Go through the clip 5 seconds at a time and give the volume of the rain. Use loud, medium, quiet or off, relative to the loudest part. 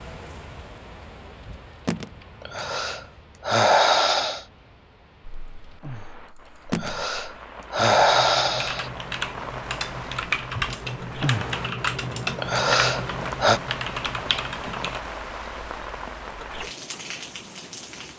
quiet, medium, loud, loud.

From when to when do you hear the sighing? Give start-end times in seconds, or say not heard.
2.4-4.5, 6.7-8.9, 12.3-13.6.